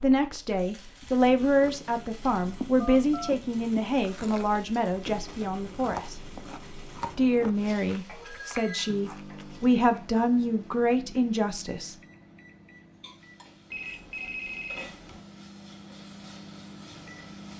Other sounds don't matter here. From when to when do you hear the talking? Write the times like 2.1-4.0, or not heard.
0.0-6.2, 7.2-11.9.